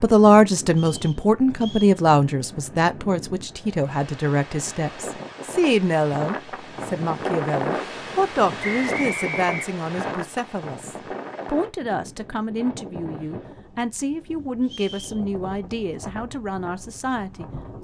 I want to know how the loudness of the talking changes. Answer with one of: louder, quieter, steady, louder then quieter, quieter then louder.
quieter.